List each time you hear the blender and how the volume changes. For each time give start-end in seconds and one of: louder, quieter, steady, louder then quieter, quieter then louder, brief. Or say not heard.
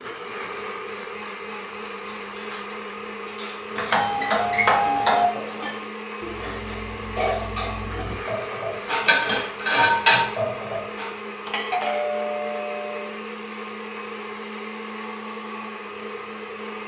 0.0-16.8 steady.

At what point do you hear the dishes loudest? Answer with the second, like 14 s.
10 s.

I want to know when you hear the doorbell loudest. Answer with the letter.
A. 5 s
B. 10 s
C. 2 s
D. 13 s
A.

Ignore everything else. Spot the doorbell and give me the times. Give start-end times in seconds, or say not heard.
3.8-5.2, 11.4-13.1.